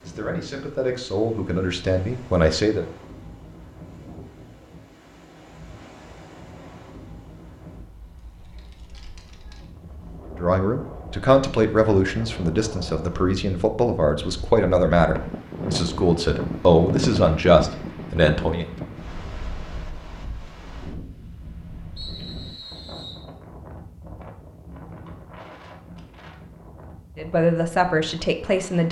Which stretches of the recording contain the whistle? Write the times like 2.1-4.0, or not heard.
21.9-23.2.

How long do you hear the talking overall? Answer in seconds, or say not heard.
13 s.